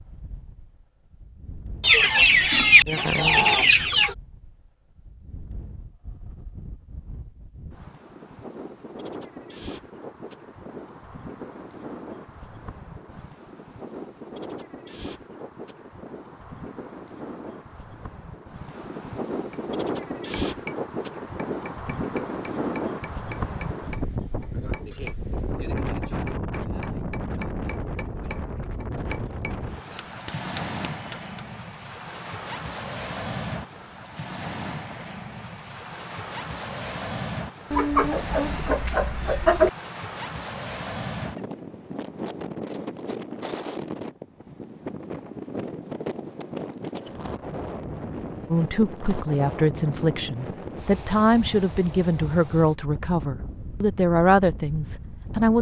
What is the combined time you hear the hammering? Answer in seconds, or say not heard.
12 s.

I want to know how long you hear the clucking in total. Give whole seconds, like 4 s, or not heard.
4 s.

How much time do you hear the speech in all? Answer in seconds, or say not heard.
7 s.